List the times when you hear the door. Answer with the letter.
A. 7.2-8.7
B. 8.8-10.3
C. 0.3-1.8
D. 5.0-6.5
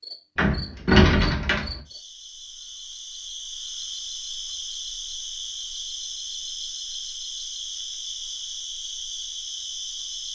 C.